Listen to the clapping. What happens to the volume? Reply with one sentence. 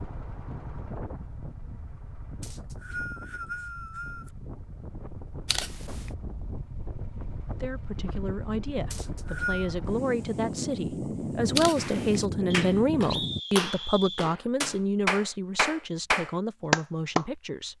The volume of the clapping goes up.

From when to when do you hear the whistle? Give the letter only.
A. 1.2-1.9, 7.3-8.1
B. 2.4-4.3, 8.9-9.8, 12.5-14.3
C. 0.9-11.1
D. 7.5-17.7
B.